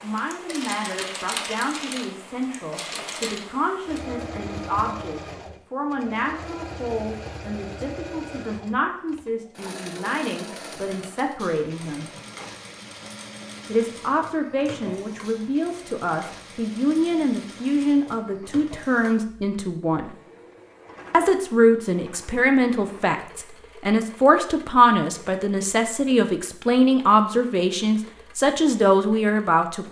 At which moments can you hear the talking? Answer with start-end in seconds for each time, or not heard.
0.0-12.1, 13.7-20.1, 21.1-29.8.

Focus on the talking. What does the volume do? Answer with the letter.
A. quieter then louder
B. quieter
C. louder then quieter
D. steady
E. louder
E.